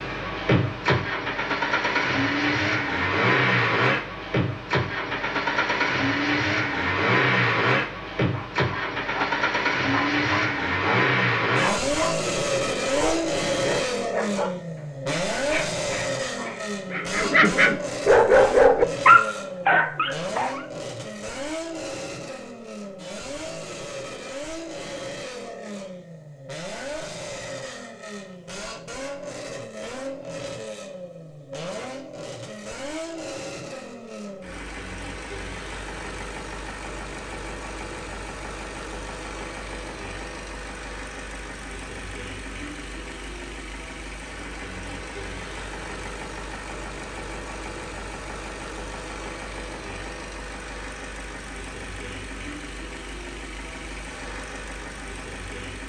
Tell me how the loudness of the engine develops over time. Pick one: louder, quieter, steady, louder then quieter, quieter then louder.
quieter.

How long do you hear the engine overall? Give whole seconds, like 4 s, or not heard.
56 s.